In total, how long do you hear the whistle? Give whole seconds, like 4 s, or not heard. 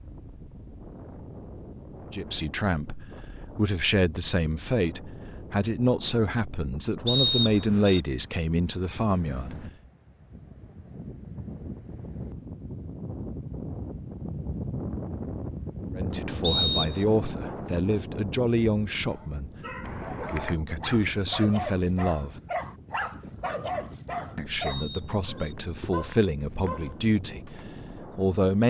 3 s.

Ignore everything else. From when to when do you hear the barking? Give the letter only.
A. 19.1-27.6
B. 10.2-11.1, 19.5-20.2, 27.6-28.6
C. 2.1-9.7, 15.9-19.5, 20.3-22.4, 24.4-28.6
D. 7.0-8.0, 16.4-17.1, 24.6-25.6
A.